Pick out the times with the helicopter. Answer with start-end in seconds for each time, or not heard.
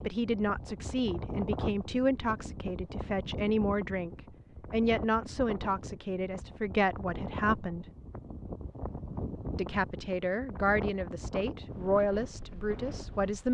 not heard.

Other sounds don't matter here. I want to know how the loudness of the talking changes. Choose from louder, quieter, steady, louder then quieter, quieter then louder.
steady.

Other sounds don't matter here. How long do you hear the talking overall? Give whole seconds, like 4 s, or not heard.
12 s.